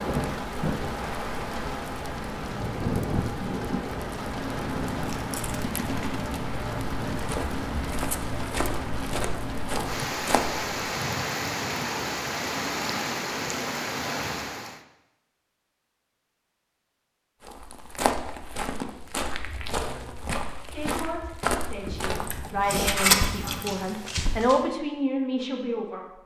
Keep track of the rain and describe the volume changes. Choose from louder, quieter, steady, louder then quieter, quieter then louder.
steady.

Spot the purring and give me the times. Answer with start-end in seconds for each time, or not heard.
not heard.